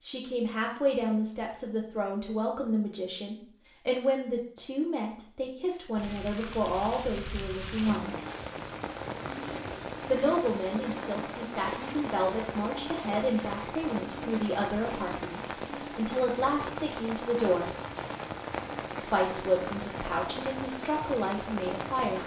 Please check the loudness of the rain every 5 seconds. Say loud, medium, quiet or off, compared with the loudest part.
off, loud, loud, loud, loud.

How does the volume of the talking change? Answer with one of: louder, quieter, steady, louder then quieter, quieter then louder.
steady.